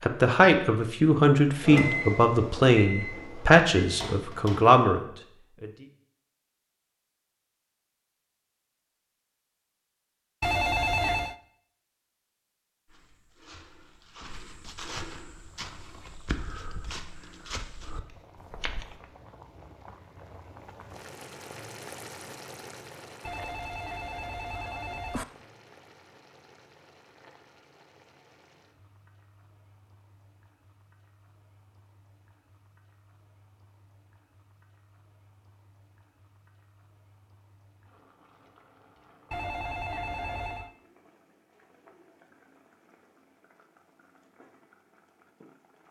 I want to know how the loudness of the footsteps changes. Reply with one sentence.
The loudness of the footsteps goes up.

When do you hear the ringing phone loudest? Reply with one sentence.
The volume of the ringing phone peaks at 11 seconds.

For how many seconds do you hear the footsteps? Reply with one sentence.
You can hear the footsteps for 6 seconds altogether.